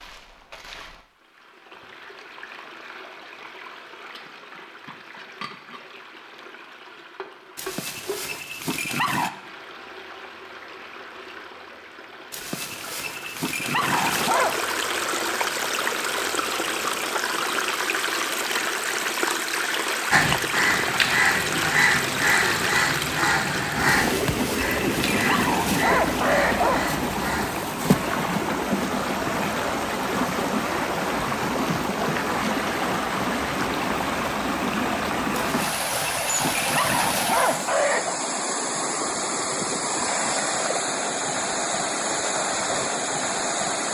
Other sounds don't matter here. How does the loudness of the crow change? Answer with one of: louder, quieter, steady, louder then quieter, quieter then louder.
quieter.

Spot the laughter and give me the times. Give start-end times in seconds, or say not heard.
not heard.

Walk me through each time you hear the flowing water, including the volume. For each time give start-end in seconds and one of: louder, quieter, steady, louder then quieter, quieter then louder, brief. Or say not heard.
0.0-43.8 louder.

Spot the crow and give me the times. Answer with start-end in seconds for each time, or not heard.
20.1-27.5.